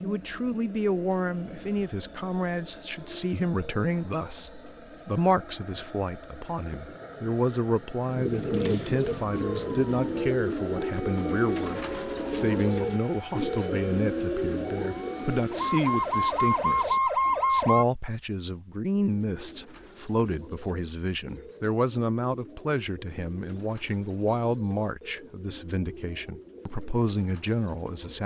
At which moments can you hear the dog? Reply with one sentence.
The dog can't be heard in this clip.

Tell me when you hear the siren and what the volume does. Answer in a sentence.
The siren can be heard from 9.1 to 17.9 s, getting louder.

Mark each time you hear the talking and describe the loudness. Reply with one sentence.
You can hear the talking from 0.0 to 28.2 s, at a steady volume.